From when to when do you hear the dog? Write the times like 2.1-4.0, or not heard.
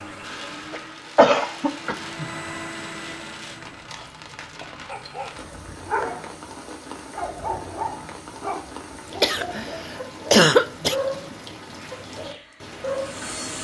4.8-13.2.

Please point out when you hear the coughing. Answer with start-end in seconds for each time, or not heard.
0.7-2.3, 5.3-6.2, 9.2-10.9.